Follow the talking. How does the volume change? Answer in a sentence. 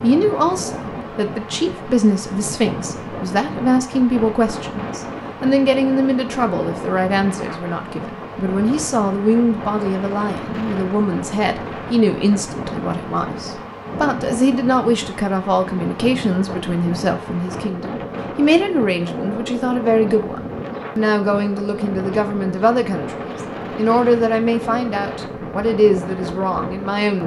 The loudness of the talking stays about the same.